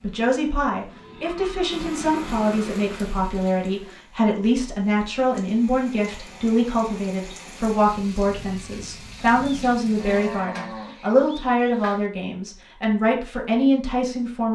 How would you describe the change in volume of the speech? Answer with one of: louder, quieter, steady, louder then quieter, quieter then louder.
steady.